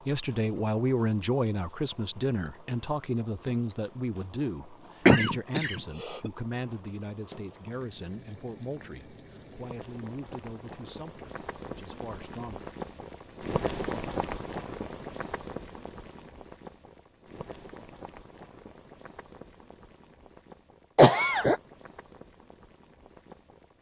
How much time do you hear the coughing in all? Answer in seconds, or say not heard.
2 s.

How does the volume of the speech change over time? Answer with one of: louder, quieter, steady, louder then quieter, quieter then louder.
quieter.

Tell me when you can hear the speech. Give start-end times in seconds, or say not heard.
0.1-12.7.